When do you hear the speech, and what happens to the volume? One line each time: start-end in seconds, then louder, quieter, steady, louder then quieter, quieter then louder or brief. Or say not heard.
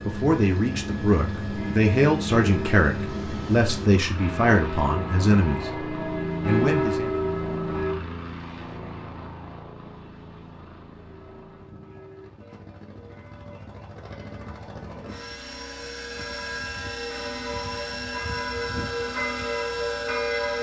0.0-5.7 steady
6.4-7.2 brief.